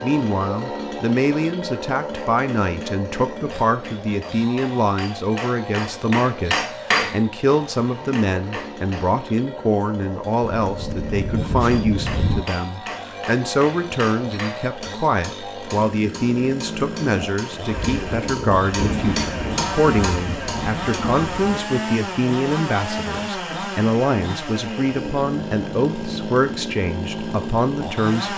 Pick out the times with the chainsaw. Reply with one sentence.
The chainsaw can be heard from 0.0 to 28.3 s.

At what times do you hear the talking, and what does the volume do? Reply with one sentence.
The talking can be heard from 0.0 to 28.3 s, at a steady volume.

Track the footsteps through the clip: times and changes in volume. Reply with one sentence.
The footsteps can't be heard in this clip.